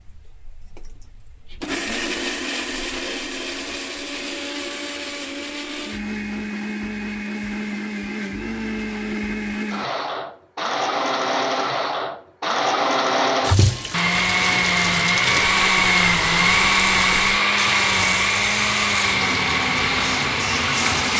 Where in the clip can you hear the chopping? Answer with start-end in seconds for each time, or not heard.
not heard.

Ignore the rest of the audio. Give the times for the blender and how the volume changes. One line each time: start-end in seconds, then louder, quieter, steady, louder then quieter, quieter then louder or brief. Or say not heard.
0.0-21.1 louder.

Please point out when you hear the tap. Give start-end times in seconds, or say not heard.
13.4-21.1.